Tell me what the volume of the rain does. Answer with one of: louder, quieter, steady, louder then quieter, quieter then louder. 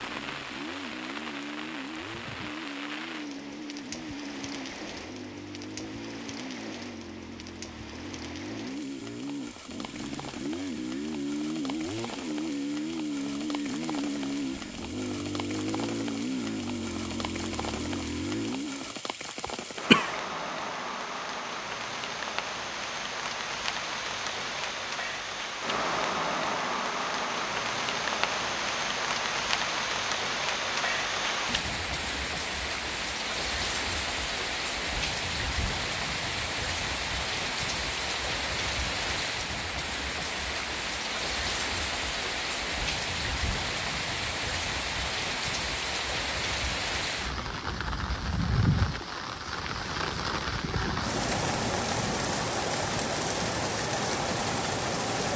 louder.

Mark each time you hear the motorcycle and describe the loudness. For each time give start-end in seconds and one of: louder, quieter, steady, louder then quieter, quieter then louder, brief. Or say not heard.
0.0-19.0 louder.